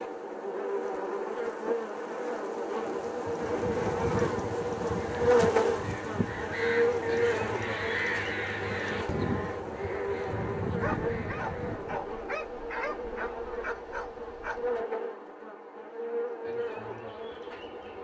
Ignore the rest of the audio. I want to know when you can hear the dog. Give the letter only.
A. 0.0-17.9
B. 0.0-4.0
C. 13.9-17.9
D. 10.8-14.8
D.